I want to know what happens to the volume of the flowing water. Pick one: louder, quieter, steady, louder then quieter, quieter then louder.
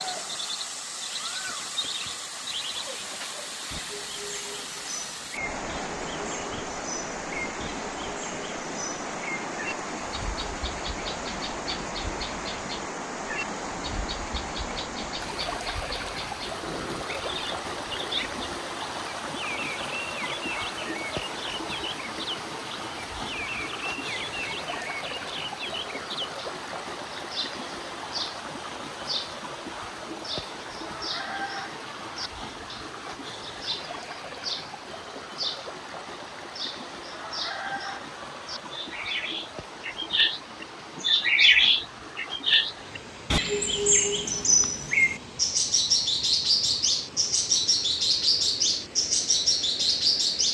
quieter.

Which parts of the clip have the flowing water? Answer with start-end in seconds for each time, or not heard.
0.0-50.5.